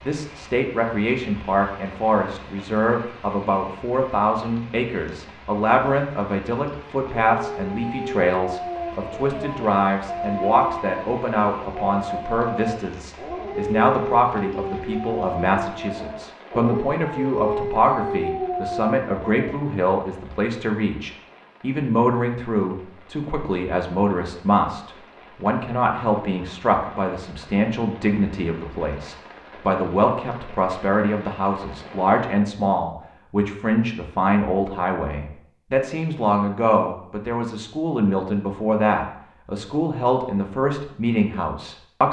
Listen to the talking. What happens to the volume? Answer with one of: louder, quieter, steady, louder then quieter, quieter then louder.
steady.